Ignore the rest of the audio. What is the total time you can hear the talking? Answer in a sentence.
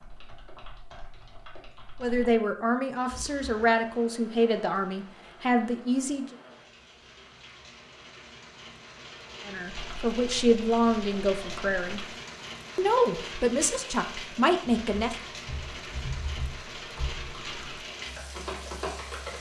You can hear the talking for 9 seconds altogether.